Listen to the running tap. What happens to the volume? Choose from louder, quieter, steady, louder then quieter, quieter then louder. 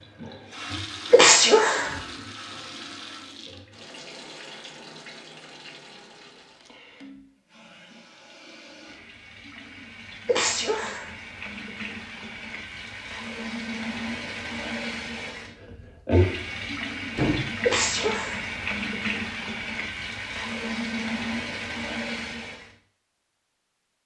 quieter then louder.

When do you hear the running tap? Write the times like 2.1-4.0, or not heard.
0.0-22.8.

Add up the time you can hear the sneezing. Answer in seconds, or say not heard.
3 s.